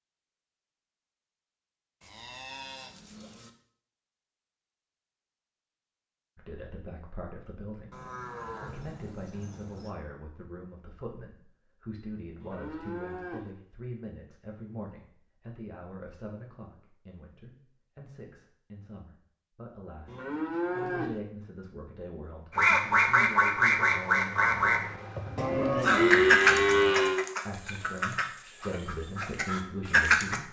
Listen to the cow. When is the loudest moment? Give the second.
26 s.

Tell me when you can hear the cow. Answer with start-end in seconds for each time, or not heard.
2.0-3.5, 7.9-9.9, 12.4-13.5, 20.1-21.2, 25.4-27.2.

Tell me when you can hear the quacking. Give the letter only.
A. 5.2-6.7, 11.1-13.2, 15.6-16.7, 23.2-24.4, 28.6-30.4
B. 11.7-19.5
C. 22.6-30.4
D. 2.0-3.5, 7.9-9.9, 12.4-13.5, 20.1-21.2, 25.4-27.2
C.